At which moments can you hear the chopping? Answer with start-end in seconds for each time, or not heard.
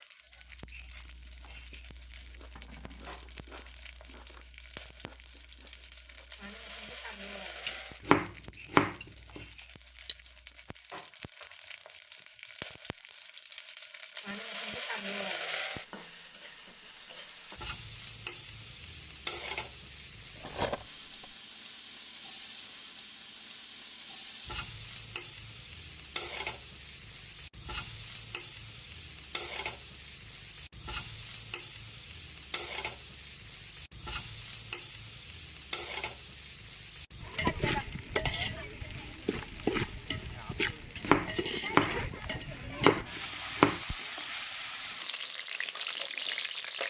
8.1-9.4, 41.0-43.8.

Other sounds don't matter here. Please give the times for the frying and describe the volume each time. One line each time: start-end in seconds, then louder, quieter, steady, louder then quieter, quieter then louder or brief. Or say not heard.
0.0-46.8 louder.